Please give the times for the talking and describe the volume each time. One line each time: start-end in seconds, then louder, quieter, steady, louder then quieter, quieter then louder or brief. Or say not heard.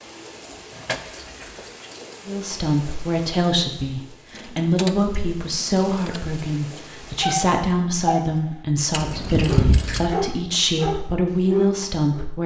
2.2-12.4 steady.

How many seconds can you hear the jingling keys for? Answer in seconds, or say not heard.
4 s.